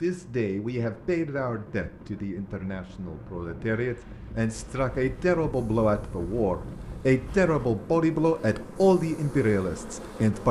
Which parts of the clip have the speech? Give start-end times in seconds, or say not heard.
0.0-10.4.